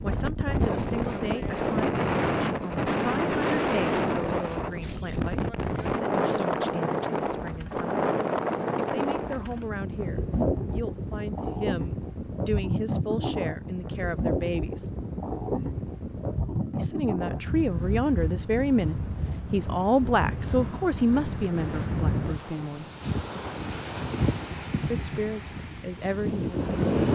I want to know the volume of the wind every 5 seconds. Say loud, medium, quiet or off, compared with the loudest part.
loud, loud, loud, medium, medium, loud.